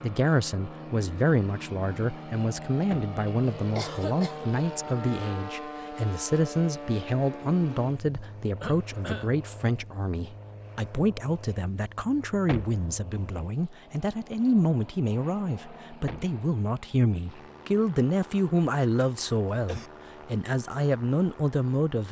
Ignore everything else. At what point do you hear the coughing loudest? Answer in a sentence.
The loudest moment of the coughing is at 4 seconds.